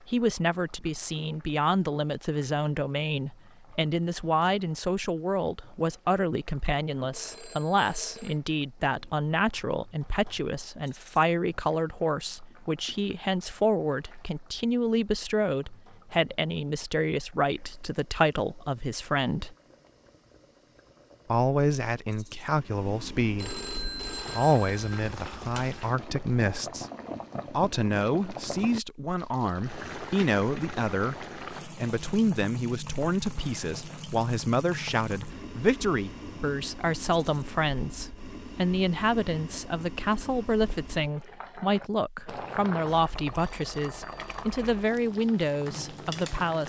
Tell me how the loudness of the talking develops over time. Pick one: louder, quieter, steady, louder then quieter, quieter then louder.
steady.